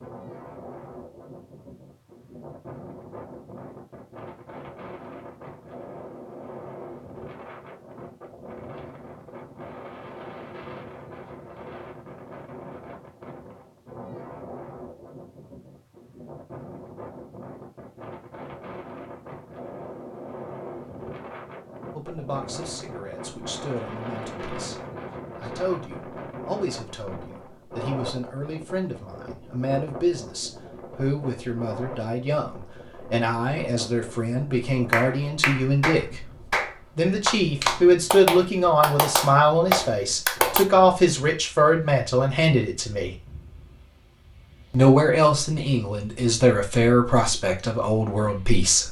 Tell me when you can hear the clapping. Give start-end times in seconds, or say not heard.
34.9-40.6.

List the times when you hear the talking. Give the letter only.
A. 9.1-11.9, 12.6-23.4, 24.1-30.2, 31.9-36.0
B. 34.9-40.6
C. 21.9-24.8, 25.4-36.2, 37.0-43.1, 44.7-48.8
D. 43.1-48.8
C.